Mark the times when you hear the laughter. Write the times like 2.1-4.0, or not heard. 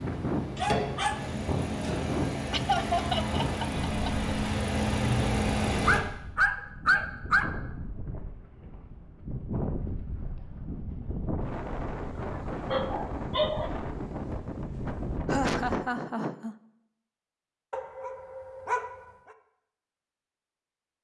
2.5-4.3, 15.2-16.6.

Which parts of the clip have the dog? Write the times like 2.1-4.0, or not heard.
0.6-1.2, 5.8-7.5, 12.3-13.7, 17.7-19.0.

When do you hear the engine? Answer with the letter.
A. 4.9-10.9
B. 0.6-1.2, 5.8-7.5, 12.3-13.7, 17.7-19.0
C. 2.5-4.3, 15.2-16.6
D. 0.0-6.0
D.